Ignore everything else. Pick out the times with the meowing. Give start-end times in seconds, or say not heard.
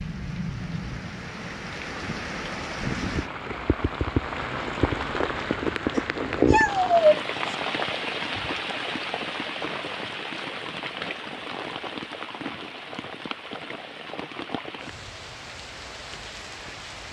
6.0-7.5.